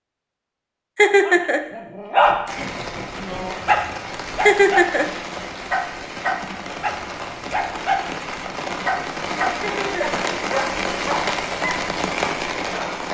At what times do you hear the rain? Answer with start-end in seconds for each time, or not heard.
2.5-13.0.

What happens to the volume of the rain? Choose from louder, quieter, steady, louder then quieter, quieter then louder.
louder.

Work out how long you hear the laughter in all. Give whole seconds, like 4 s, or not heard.
2 s.